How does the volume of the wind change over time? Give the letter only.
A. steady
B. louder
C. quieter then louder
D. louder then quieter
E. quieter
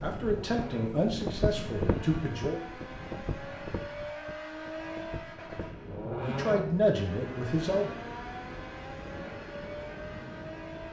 E.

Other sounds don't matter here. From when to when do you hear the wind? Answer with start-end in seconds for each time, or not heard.
0.0-10.8.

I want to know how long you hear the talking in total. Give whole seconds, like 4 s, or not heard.
4 s.